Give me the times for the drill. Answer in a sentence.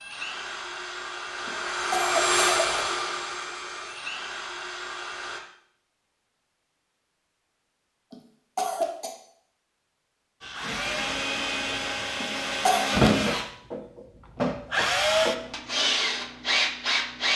The drill can be heard from 0.0 to 5.4 s and from 10.4 to 17.3 s.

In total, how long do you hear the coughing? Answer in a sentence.
You can hear the coughing for 3 seconds altogether.